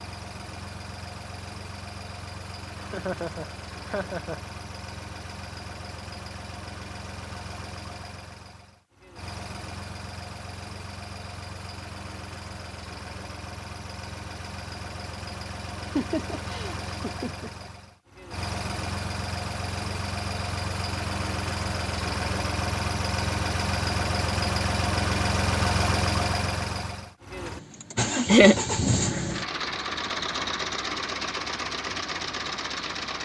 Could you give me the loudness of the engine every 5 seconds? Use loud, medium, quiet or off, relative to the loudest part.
quiet, quiet, quiet, medium, loud, loud, loud.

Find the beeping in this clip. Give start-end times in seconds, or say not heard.
not heard.